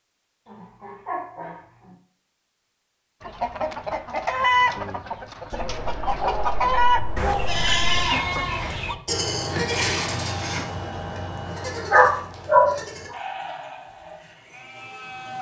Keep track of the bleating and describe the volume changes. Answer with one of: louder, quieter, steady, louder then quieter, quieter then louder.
quieter.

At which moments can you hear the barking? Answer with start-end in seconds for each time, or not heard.
0.5-1.9, 5.5-8.0, 11.9-12.7.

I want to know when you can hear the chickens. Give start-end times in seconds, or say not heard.
3.2-8.9.